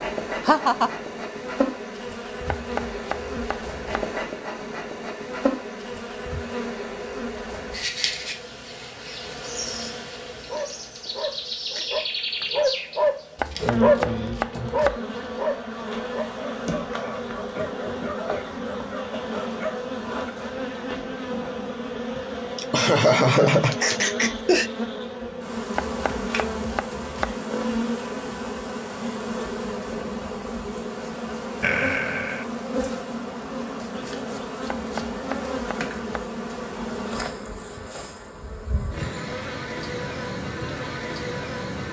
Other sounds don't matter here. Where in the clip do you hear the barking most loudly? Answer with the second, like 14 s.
14 s.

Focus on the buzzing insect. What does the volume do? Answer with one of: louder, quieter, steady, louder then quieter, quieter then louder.
steady.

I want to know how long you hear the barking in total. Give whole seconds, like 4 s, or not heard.
10 s.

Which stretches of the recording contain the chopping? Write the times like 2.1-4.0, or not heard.
2.5-4.0, 13.3-15.0, 25.8-27.4, 34.8-36.2.